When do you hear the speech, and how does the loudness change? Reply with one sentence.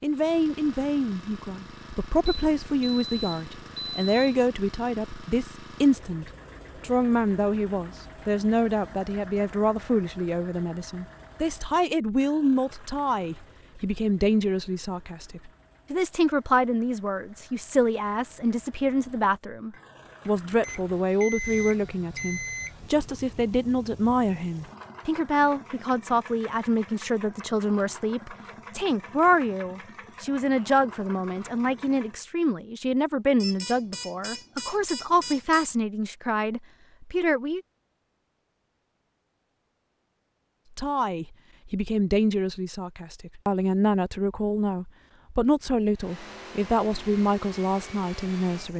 You can hear the speech from 0.0 to 37.6 s, at a steady volume; and from 40.8 to 48.7 s, at a steady volume.